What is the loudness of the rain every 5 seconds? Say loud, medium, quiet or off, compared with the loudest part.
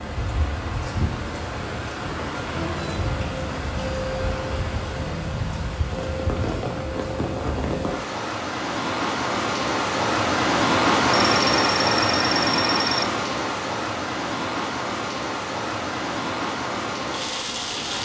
medium, medium, loud, medium.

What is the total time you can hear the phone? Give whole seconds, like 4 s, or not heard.
2 s.